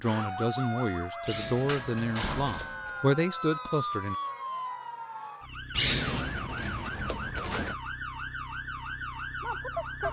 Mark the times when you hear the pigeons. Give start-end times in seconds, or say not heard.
1.2-3.0, 5.8-7.8.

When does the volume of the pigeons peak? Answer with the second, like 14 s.
6 s.